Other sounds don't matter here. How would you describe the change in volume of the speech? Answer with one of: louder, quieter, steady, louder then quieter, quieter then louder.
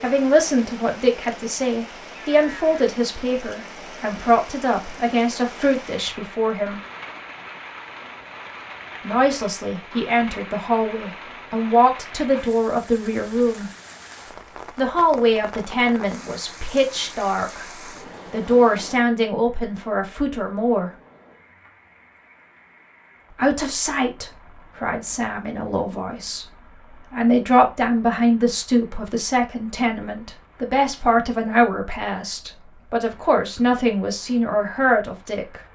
steady.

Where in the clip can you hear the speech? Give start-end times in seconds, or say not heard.
0.0-6.8, 9.0-13.7, 14.8-20.9, 23.3-35.6.